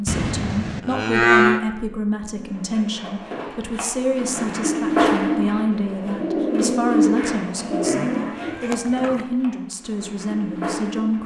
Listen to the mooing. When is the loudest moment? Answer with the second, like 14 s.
1 s.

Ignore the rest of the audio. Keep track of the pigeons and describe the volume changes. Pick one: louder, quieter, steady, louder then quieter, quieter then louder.
louder then quieter.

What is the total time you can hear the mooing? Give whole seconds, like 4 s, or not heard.
3 s.